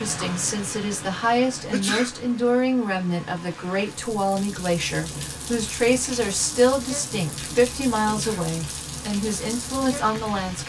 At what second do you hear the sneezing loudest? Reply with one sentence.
The loudest moment of the sneezing is at 2 seconds.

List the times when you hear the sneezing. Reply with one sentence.
The sneezing can be heard from 1.7 to 2.1 s and from 8.1 to 8.5 s.